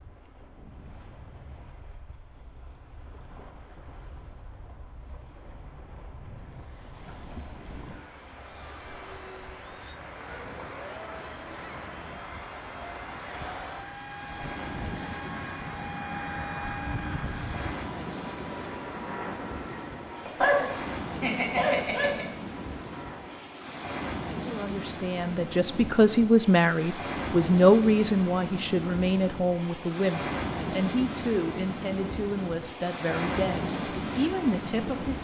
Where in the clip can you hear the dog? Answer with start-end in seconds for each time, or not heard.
20.2-22.2.